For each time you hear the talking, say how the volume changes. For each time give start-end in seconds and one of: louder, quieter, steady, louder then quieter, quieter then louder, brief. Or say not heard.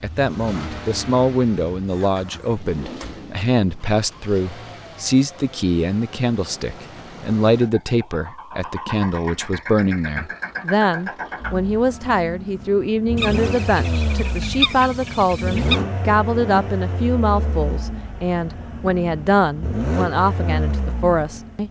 0.0-21.6 steady.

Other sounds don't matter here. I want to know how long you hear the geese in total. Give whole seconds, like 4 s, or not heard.
3 s.